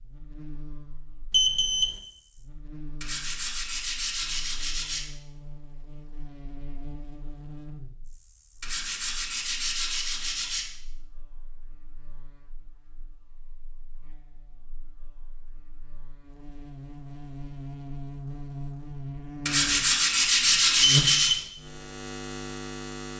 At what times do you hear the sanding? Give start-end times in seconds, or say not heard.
3.0-5.0, 8.6-10.7, 19.4-21.4.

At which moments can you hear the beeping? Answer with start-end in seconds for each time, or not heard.
1.3-1.9, 20.9-21.4.